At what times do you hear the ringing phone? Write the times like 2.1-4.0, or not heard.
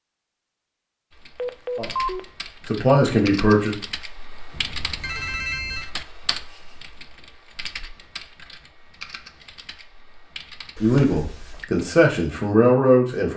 1.4-2.2, 4.5-5.9, 10.8-11.7.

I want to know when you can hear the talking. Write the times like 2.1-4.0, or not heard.
1.8-3.8, 10.8-13.3.